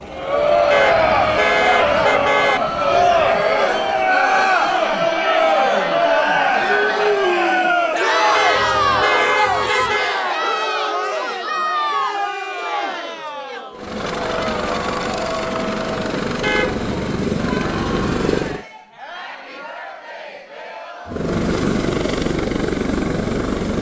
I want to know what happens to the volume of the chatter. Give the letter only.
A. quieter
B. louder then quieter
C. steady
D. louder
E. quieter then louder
A.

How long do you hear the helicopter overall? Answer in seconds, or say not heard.
12 s.